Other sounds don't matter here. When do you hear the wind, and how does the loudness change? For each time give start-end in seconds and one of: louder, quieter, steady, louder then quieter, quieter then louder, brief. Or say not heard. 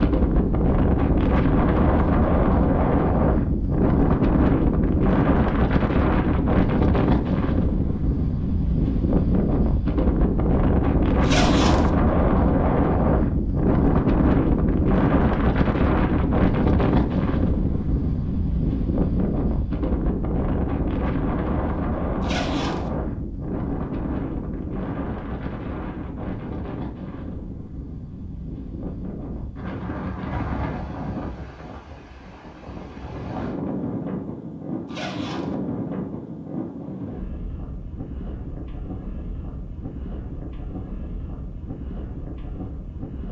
0.0-43.2 quieter.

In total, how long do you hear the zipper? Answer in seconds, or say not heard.
2 s.